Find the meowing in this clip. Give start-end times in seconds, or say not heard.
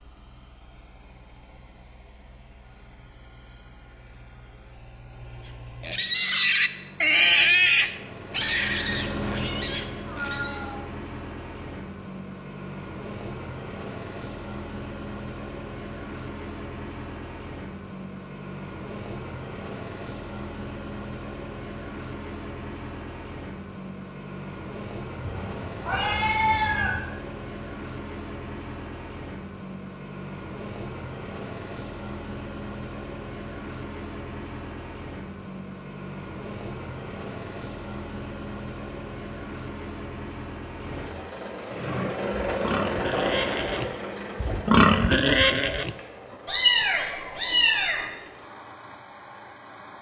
10.1-10.8, 25.2-27.0, 46.5-48.0.